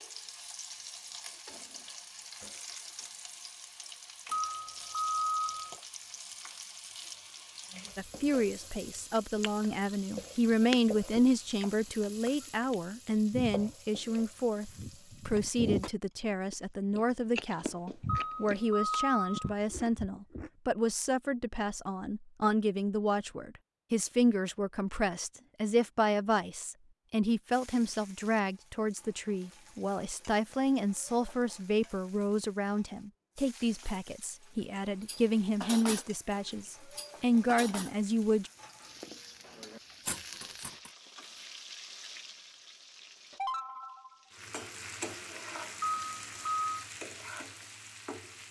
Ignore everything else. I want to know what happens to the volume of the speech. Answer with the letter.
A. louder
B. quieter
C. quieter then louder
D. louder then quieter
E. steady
E.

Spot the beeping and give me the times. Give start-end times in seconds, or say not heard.
4.3-5.8, 18.1-19.6, 45.8-46.7.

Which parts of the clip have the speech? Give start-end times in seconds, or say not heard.
8.0-38.5.